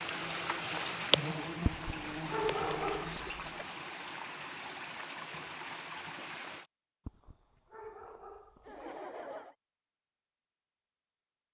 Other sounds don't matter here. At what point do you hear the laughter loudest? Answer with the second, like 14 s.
9 s.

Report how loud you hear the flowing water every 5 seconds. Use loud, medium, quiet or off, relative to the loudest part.
loud, loud, off.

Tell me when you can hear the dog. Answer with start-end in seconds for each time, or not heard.
1.6-3.4, 7.0-8.8.